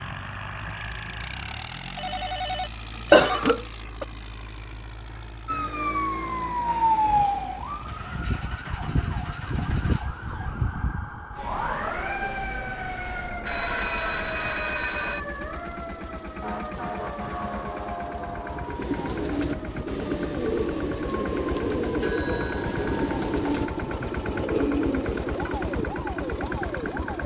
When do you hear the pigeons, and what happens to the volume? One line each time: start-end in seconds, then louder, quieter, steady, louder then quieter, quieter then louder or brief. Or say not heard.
18.6-25.6 steady.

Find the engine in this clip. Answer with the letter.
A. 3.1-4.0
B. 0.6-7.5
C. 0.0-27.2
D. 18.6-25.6
C.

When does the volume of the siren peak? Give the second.
7 s.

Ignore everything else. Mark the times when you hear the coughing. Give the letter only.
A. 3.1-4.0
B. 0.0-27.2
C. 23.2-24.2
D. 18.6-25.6
A.